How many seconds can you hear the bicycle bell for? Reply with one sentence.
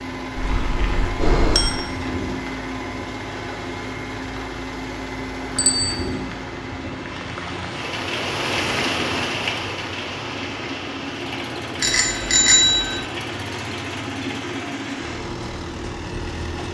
You can hear the bicycle bell for 3 seconds altogether.